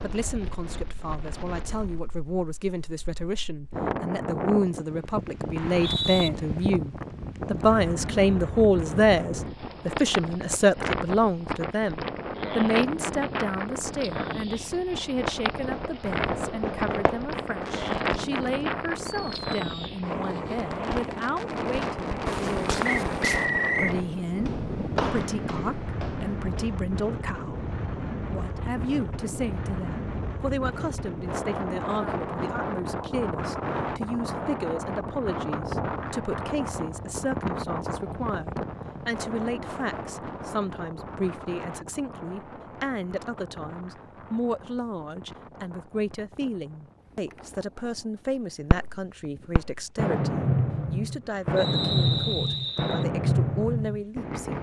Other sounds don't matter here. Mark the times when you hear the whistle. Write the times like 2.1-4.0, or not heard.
5.5-6.3, 22.9-23.9, 51.5-53.0.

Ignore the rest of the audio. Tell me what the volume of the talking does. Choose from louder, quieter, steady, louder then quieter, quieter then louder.
quieter.